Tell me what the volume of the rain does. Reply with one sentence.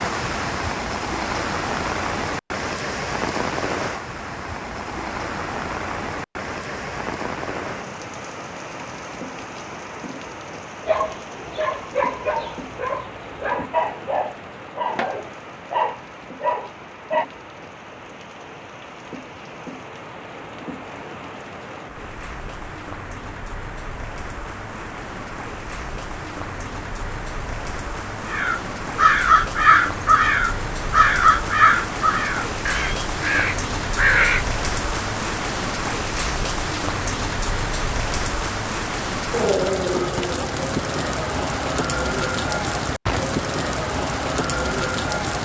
The loudness of the rain goes down, then up.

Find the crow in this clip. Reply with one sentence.
You can hear the crow from 28.2 to 34.5 s.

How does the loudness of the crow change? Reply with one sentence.
The loudness of the crow goes down.